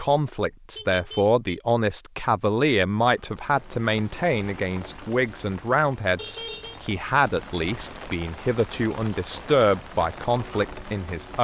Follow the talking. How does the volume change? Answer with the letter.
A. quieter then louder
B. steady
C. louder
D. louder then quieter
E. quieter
B.